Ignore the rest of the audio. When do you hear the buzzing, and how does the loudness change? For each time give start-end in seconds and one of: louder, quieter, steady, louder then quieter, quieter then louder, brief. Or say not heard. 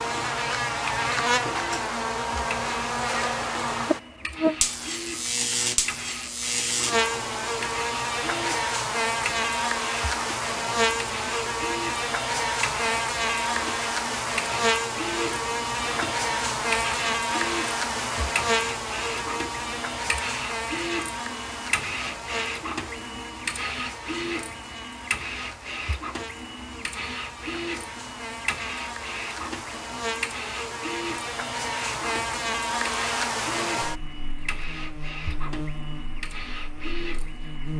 0.0-37.7 quieter then louder.